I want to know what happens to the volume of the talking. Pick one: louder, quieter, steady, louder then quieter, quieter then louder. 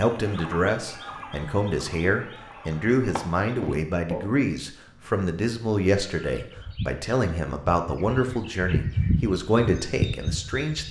steady.